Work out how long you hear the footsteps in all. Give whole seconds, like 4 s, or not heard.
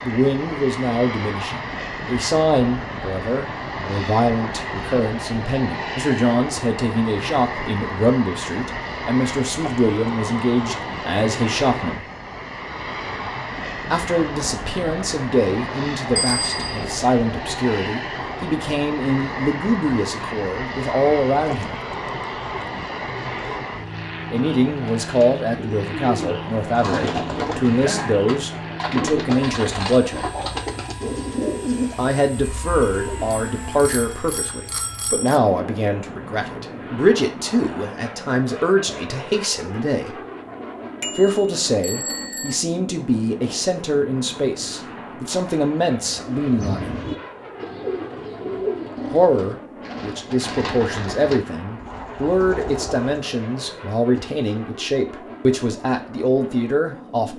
not heard.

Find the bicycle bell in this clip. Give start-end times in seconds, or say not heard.
16.1-17.0, 32.8-35.4, 41.0-42.5.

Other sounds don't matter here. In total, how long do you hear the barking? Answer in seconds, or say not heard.
not heard.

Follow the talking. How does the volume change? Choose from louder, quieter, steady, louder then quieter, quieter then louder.
steady.